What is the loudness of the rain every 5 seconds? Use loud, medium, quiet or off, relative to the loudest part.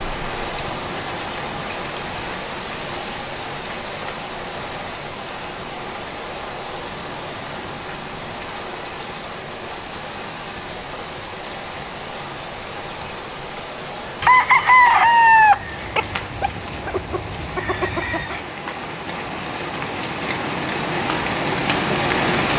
medium, medium, medium, medium, loud.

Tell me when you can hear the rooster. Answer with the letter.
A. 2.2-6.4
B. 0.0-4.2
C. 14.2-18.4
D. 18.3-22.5
C.